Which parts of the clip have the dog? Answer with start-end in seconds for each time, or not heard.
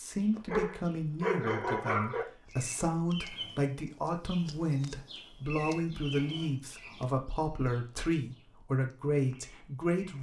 0.5-2.2.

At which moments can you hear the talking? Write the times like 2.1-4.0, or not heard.
0.0-10.1.